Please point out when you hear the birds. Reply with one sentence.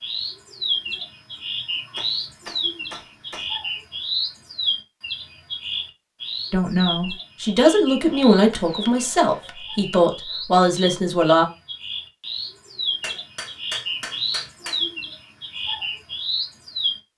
The birds can be heard from 0.0 to 16.9 s.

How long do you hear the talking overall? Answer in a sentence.
The talking can be heard for 5 seconds in total.